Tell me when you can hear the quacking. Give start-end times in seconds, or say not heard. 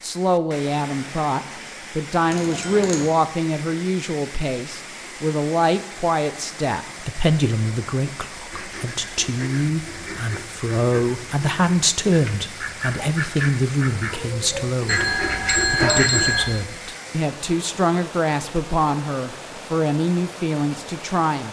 8.5-16.4.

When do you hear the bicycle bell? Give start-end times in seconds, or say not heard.
2.3-3.0, 14.8-16.4.